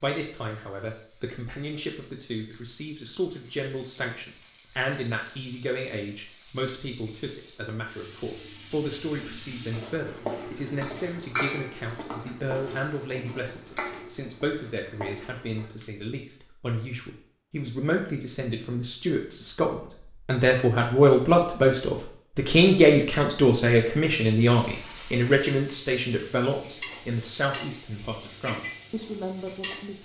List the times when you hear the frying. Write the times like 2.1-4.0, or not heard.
0.0-15.9, 24.4-30.0.